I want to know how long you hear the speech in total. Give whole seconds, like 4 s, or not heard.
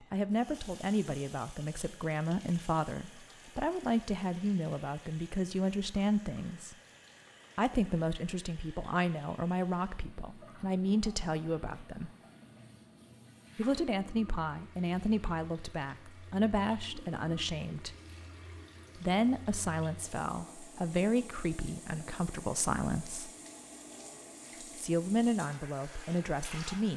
22 s.